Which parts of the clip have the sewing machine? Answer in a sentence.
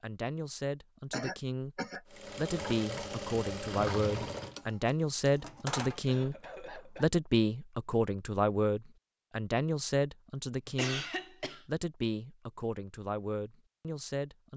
You can hear the sewing machine from 2.1 to 6.2 s.